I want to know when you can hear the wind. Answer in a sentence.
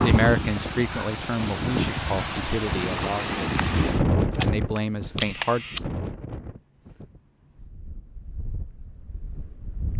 You can hear the wind from 0.0 to 9.9 s.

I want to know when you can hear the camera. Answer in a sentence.
The camera can be heard from 4.3 to 5.8 s.